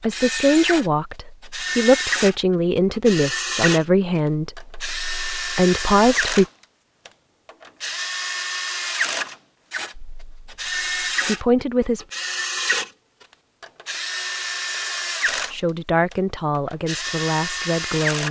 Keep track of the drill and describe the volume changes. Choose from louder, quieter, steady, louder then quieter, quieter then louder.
steady.